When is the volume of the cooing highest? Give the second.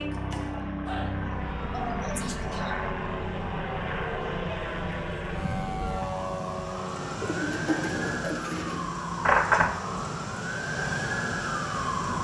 8 s.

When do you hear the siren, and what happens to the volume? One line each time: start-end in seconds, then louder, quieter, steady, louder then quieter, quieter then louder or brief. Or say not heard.
0.0-12.1 louder.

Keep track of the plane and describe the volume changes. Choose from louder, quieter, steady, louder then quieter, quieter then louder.
quieter.